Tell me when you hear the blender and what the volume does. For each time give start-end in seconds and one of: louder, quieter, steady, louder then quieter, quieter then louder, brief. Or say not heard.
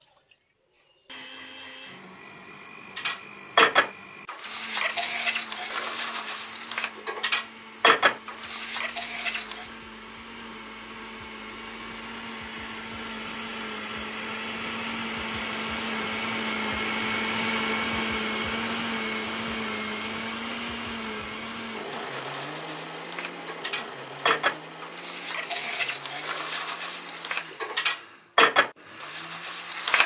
0.0-30.0 louder then quieter.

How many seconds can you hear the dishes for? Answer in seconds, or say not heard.
15 s.